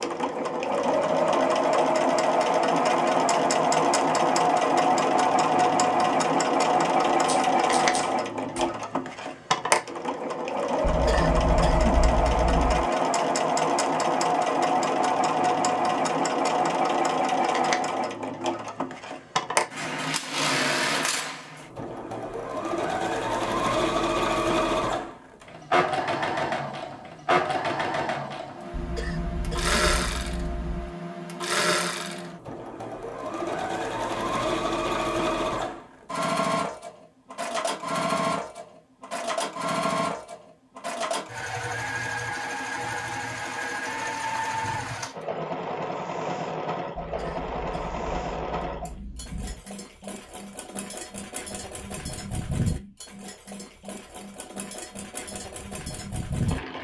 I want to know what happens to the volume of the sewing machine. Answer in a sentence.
The volume of the sewing machine goes down.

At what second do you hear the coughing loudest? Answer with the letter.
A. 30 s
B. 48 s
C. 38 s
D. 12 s
D.